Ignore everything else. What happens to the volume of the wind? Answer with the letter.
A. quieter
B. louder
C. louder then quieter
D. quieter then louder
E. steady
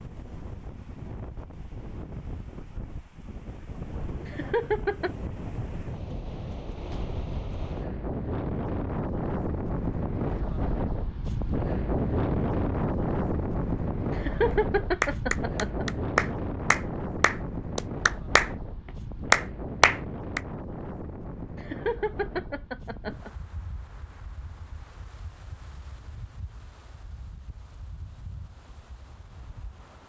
C.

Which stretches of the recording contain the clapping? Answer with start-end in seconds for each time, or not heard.
15.0-18.5, 19.3-20.4.